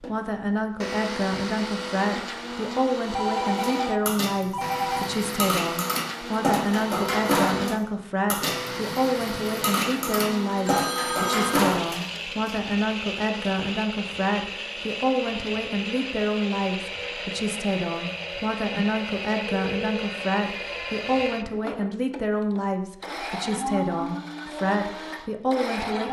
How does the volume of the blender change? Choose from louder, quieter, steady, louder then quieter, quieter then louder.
steady.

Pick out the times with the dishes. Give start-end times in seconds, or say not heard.
3.5-12.6.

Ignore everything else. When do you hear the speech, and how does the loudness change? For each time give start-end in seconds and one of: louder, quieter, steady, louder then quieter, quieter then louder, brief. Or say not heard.
0.0-26.0 steady.